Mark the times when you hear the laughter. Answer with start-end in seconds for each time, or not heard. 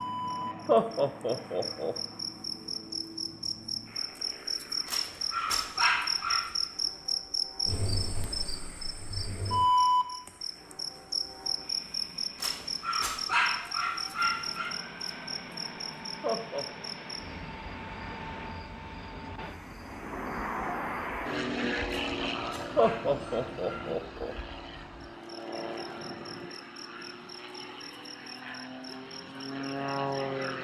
0.7-1.9, 16.2-16.6, 22.8-24.4.